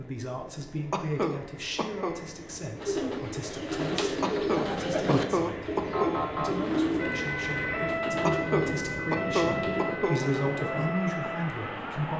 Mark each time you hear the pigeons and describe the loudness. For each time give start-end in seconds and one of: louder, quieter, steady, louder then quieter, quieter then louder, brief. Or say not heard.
2.8-10.9 quieter.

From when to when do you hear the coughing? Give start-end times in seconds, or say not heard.
0.9-2.2, 4.2-6.2, 8.2-10.2.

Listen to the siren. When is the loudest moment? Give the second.
8 s.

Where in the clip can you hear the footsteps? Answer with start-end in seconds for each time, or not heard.
not heard.